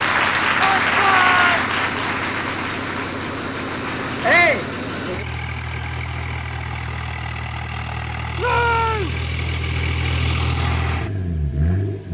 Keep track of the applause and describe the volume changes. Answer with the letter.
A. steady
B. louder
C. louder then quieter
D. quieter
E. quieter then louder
D.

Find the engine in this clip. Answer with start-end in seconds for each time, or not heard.
0.0-12.0.